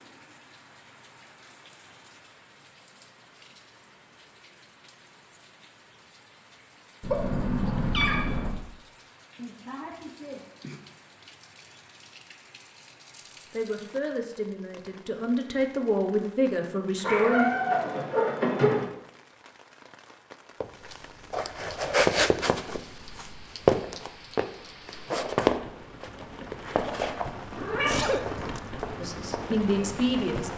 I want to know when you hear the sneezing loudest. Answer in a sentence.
The loudest moment of the sneezing is at 28 seconds.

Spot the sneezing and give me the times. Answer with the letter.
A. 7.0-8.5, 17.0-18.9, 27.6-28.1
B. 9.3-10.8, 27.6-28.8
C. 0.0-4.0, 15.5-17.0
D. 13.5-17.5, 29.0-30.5
B.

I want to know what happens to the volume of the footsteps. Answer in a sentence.
The loudness of the footsteps goes down.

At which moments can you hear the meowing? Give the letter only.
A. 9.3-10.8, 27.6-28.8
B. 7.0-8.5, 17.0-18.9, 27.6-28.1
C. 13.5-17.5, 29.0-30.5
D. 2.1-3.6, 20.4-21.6
B.